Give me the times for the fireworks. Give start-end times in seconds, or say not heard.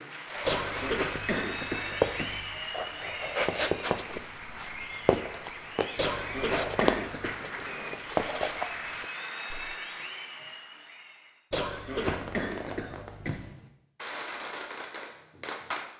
12.0-15.9.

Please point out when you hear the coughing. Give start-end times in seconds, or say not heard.
0.5-2.5, 6.0-7.4, 11.5-13.5.